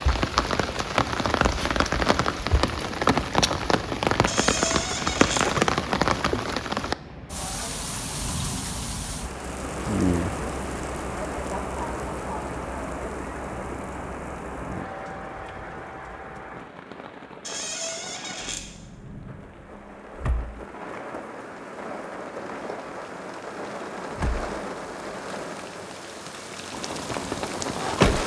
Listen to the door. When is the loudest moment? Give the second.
5 s.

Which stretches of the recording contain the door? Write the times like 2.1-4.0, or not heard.
4.2-5.5, 17.4-18.6.